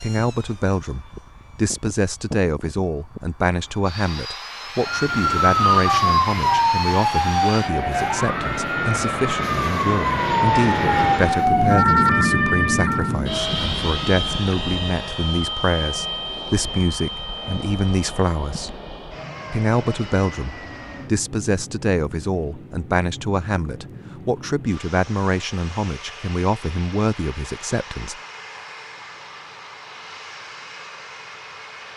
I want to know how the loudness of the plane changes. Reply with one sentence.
The loudness of the plane goes up, then down.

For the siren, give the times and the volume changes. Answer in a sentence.
You can hear the siren from 4.8 to 13.2 s, getting quieter then louder.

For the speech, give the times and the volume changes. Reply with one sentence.
The speech can be heard from 0.0 to 18.8 s, at a steady volume; and from 19.5 to 28.1 s, at a steady volume.